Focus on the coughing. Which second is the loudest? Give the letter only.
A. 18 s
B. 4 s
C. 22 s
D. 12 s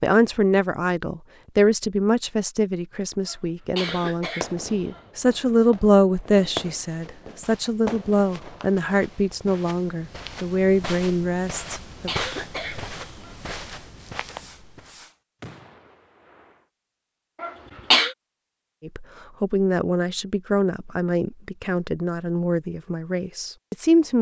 A.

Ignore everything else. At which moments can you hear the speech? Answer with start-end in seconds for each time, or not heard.
0.0-12.1, 18.8-24.1.